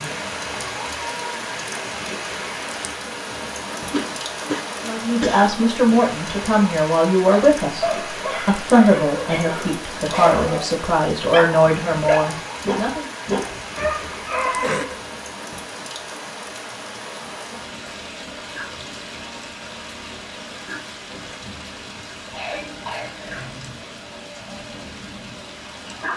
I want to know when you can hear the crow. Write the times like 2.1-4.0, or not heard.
not heard.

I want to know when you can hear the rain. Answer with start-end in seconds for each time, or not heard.
0.0-26.1.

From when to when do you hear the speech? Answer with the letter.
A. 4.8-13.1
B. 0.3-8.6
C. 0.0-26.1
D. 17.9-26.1
A.